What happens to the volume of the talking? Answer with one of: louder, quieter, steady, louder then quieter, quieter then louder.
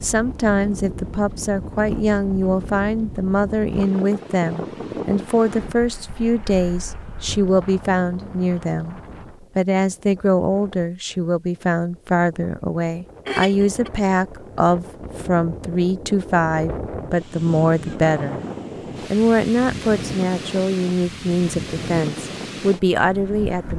steady.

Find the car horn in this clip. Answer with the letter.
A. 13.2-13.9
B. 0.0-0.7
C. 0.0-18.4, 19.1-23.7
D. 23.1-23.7
A.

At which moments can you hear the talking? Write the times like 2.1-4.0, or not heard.
0.0-18.4, 19.1-23.7.